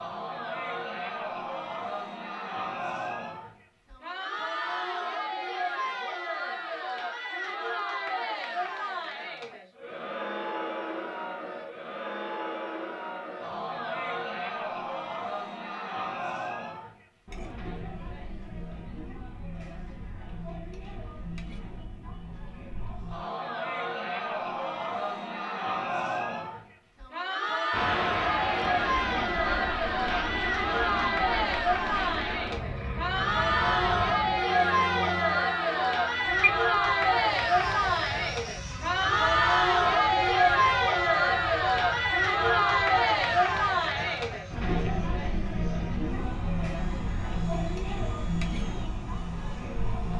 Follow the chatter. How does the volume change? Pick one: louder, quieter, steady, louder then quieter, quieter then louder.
louder.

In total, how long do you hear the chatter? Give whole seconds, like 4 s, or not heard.
50 s.